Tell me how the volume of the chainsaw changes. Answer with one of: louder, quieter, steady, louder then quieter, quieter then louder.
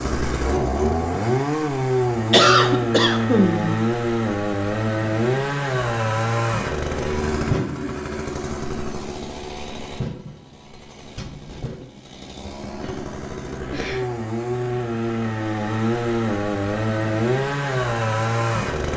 quieter then louder.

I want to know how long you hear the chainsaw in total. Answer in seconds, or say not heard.
19 s.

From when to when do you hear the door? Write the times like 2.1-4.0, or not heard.
not heard.